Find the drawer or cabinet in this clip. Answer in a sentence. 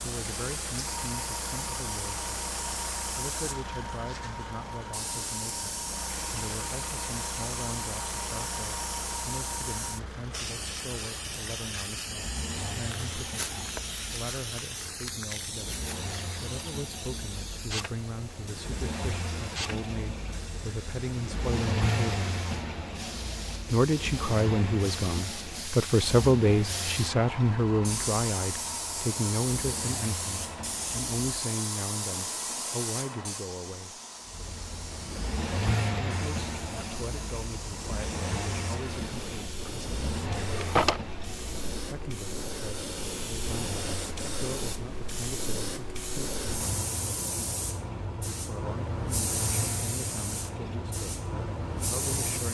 You can hear the drawer or cabinet from 40.4 to 41.0 s.